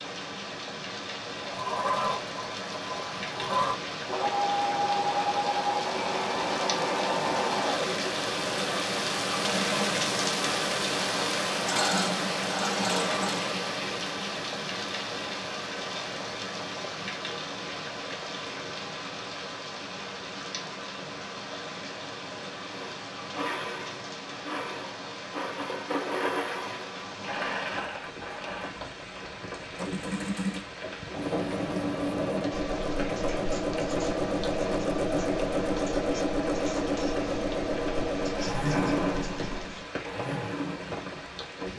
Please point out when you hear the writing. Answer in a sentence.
You can hear the writing from 31.1 to 39.9 s.